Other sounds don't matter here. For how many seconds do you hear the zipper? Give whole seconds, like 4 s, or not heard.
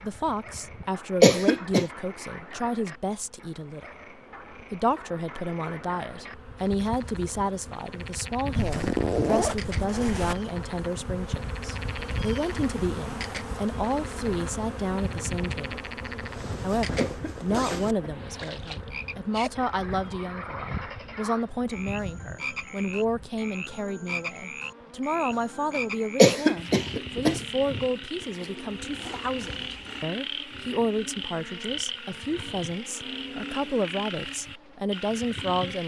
5 s.